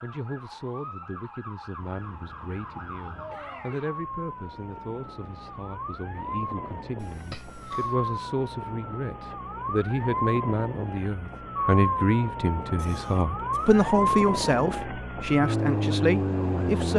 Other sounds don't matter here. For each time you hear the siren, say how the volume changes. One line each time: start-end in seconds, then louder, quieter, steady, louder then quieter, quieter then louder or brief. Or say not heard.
0.0-16.9 louder.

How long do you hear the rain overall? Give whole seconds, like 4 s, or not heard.
not heard.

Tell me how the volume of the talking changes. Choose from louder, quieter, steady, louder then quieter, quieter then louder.
louder.